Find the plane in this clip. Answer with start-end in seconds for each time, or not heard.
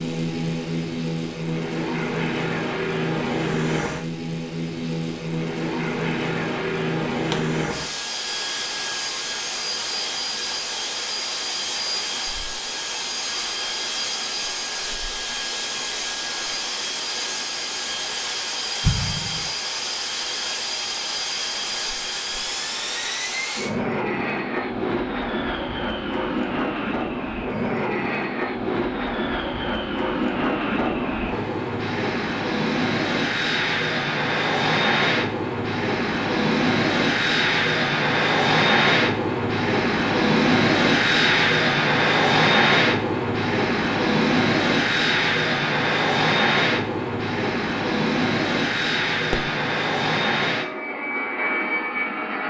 0.0-52.4.